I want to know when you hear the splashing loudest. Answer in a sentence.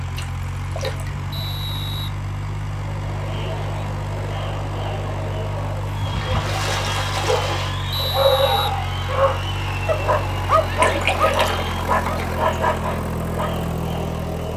The loudest moment of the splashing is at 11 seconds.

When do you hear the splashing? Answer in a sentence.
You can hear the splashing from 0.1 to 1.1 s, from 6.0 to 7.8 s and from 10.8 to 12.4 s.